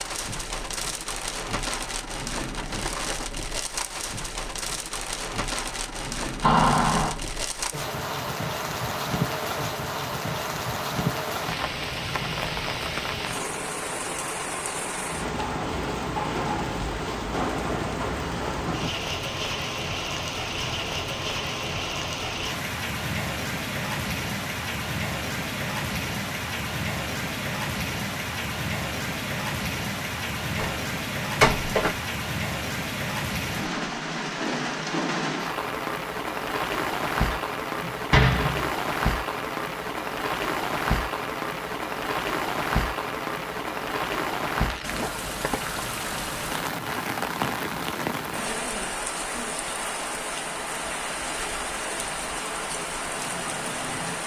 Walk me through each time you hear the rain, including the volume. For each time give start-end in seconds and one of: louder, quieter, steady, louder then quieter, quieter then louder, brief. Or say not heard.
0.0-54.2 steady.